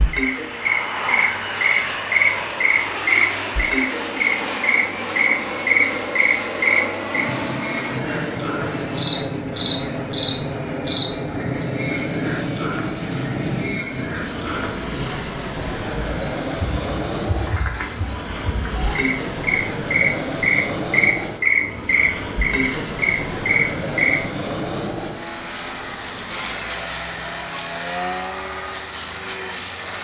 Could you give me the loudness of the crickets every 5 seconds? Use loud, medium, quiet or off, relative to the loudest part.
loud, loud, loud, loud, loud, off.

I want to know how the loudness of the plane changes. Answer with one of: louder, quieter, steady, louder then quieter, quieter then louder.
steady.